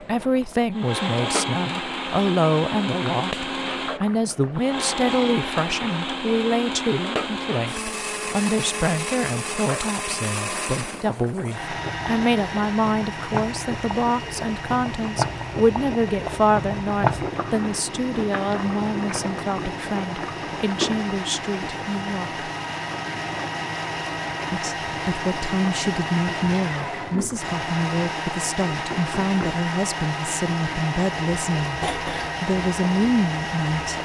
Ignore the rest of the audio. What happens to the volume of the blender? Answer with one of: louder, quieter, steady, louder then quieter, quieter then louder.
quieter then louder.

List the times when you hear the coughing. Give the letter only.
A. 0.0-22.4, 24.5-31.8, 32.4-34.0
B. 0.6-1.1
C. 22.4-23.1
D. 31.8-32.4
D.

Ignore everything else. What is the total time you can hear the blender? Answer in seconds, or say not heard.
34 s.